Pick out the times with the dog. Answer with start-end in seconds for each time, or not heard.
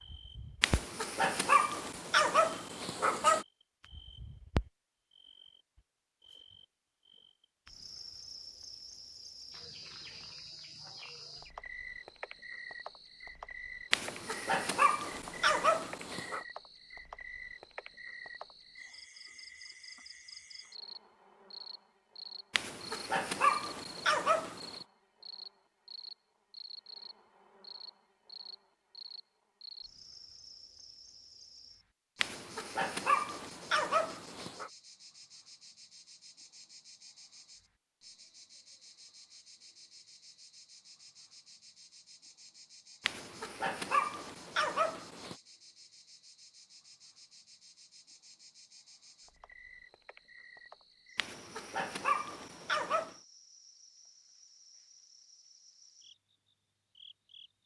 0.6-3.5, 13.9-16.4, 22.5-24.8, 32.2-34.7, 43.0-45.4, 51.1-53.1.